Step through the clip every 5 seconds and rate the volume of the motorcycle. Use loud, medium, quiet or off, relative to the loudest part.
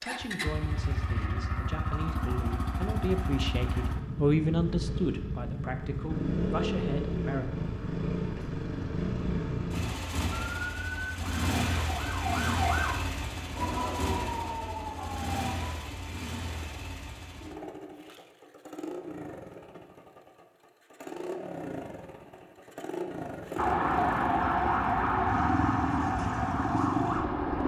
loud, loud, loud, medium, medium, loud.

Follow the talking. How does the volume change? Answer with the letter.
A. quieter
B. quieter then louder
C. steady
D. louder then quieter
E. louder
D.